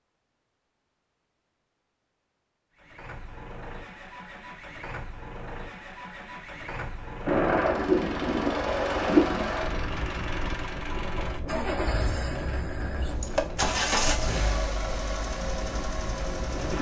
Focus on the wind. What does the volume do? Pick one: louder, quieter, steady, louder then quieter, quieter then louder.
quieter.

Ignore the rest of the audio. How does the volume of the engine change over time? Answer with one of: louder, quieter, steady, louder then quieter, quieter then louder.
louder.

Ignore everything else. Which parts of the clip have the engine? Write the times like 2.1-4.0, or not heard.
2.8-16.7.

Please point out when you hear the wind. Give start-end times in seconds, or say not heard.
7.2-16.7.